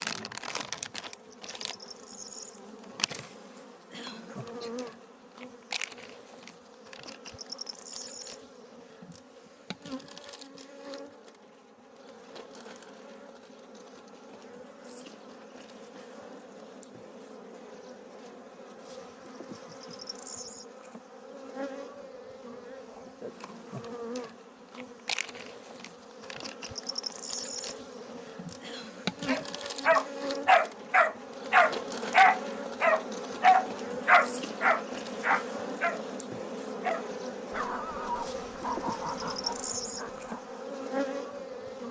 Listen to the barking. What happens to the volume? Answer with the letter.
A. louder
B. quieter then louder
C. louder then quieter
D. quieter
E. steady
D.